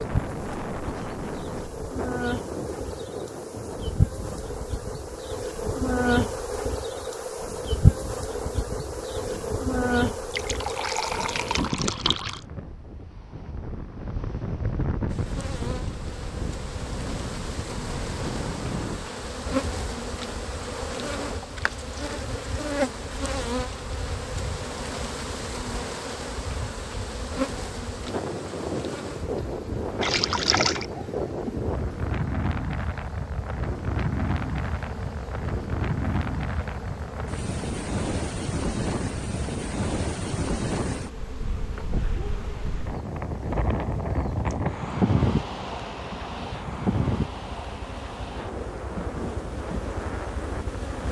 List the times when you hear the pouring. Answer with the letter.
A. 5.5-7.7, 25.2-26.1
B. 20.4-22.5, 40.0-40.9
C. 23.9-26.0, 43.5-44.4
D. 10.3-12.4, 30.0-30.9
D.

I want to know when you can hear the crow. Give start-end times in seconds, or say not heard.
not heard.